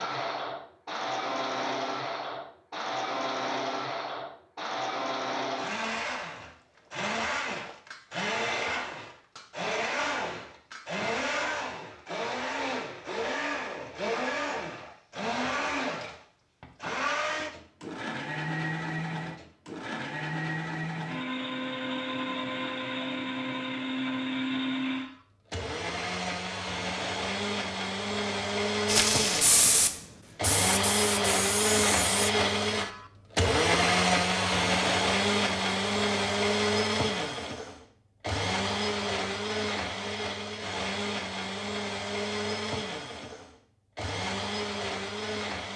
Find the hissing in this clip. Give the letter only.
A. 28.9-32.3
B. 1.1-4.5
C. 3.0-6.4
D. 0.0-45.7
A.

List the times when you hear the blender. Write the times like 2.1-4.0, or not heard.
0.0-45.7.